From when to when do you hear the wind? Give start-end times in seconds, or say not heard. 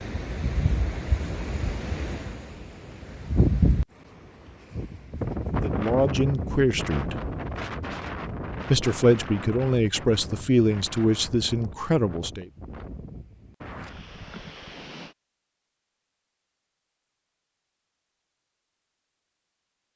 0.0-15.2.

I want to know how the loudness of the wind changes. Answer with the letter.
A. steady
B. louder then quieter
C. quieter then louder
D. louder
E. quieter
B.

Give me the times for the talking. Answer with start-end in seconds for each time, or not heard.
5.6-7.2, 8.7-12.4.